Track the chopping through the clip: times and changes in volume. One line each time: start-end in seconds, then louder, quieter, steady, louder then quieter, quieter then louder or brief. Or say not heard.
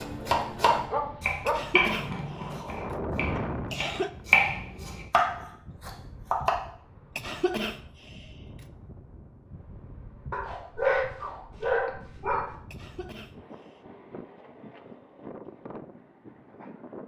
0.0-6.5 quieter then louder.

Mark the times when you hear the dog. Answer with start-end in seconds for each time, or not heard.
0.1-1.8, 10.3-12.6.